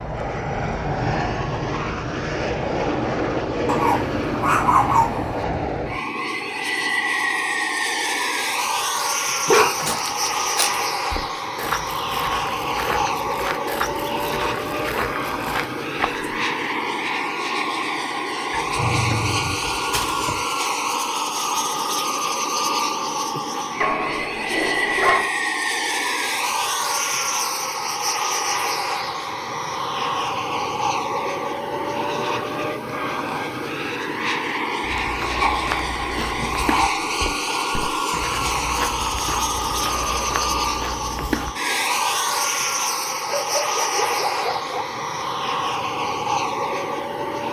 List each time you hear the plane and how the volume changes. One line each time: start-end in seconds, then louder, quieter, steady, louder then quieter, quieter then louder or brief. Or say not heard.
0.0-47.4 steady.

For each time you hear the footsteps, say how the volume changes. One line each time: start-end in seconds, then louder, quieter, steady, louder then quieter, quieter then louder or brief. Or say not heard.
9.6-16.3 steady
34.8-41.5 steady.